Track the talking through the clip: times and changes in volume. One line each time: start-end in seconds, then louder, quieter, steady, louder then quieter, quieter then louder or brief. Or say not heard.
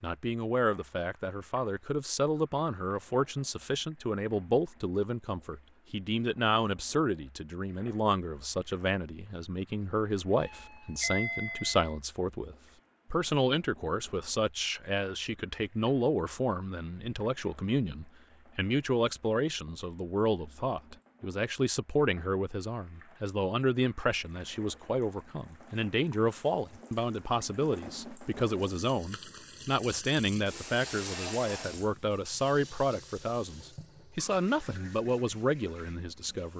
0.0-36.5 steady.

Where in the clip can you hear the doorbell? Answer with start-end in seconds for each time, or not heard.
10.3-11.9.